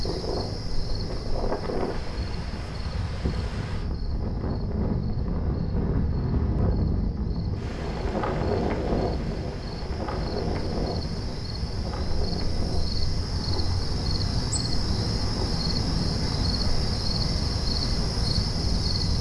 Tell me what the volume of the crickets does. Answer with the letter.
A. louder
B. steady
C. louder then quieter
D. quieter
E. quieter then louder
E.